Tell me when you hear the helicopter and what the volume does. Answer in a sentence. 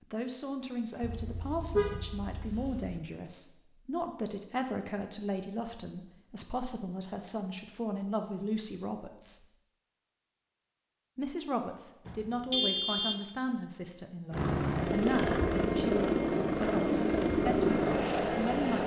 The helicopter can be heard from 14.3 to 18.8 s, at a steady volume.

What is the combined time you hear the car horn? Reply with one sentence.
You can hear the car horn for 3 seconds altogether.